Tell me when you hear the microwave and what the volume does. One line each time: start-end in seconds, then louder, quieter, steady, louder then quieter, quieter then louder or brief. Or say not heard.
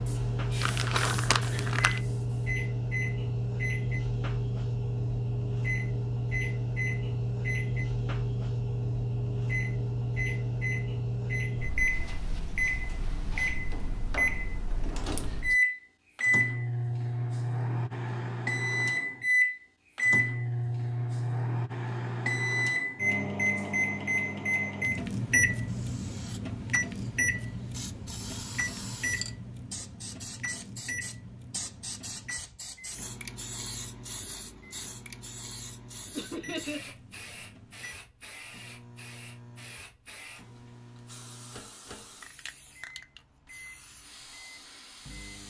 0.0-45.4 quieter.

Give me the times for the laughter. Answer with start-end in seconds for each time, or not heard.
36.1-36.9.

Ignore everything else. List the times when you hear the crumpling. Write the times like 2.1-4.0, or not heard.
0.6-2.0.